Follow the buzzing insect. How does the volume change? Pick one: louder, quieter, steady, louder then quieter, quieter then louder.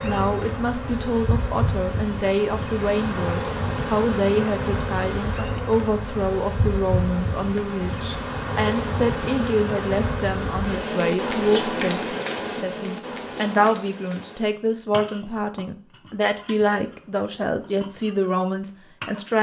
quieter.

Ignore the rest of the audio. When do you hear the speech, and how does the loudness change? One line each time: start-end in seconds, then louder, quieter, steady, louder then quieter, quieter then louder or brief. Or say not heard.
0.0-19.3 steady.